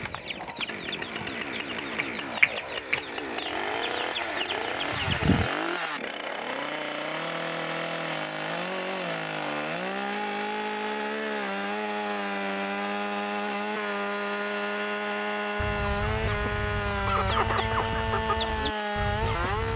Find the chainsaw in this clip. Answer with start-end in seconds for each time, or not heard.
0.0-19.7.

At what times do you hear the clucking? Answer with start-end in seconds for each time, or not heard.
0.0-5.5, 15.6-19.7.